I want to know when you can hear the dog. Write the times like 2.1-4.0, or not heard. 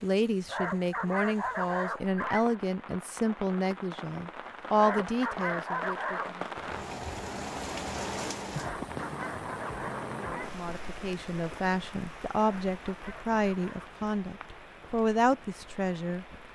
0.5-2.6, 4.8-6.3, 8.5-10.5, 12.3-13.9.